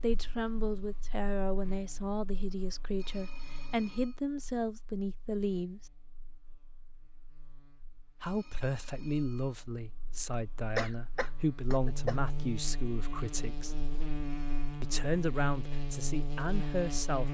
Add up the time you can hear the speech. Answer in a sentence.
You can hear the speech for 14 seconds altogether.